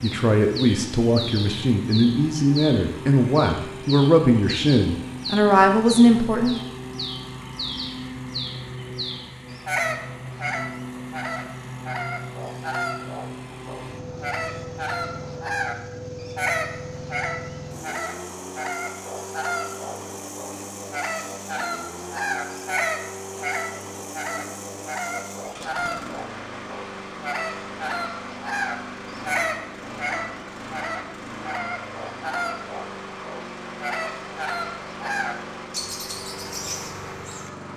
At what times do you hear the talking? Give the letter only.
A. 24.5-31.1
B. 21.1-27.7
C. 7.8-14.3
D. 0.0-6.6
D.